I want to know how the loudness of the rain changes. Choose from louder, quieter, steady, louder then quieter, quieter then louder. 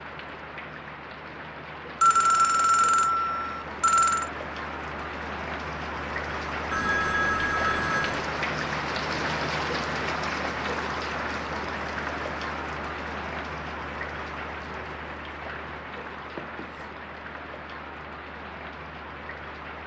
louder then quieter.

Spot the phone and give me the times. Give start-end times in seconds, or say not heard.
2.0-4.3, 6.7-8.2, 16.4-16.9.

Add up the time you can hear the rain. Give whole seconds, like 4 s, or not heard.
20 s.